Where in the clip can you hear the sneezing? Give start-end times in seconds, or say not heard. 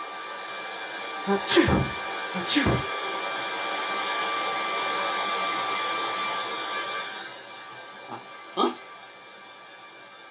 1.2-2.9, 8.1-8.8.